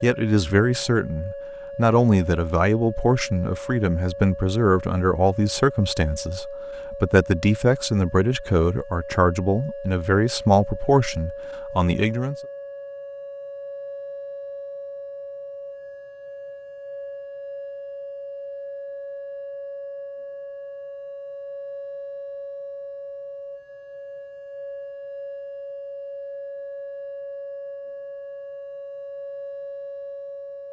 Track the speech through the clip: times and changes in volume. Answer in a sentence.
You can hear the speech from 0.0 to 12.3 s, at a steady volume.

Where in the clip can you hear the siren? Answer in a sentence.
The siren can be heard from 0.0 to 30.6 s.